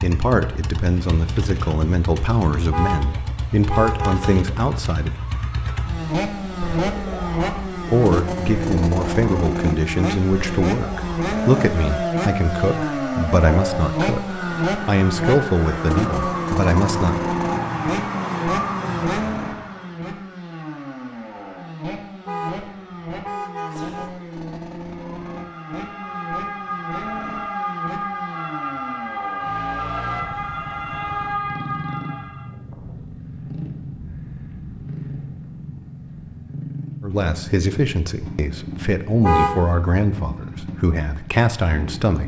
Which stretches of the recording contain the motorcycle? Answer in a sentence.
You can hear the motorcycle from 0.0 to 42.2 s.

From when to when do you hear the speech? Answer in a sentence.
You can hear the speech from 0.0 to 5.2 s, from 7.8 to 17.1 s and from 37.0 to 42.2 s.